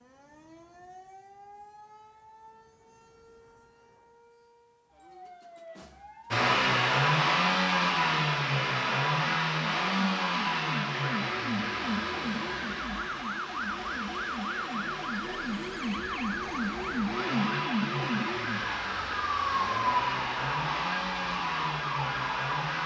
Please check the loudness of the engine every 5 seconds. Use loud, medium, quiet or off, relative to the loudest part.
off, loud, medium, medium, medium.